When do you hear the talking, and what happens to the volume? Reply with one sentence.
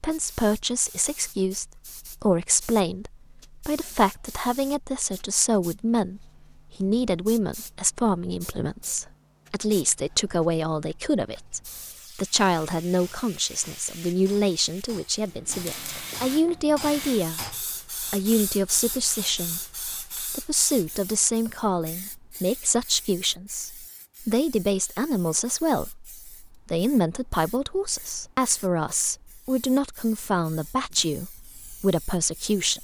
The talking can be heard from 0.0 to 17.4 s, at a steady volume; and from 18.1 to 32.7 s, at a steady volume.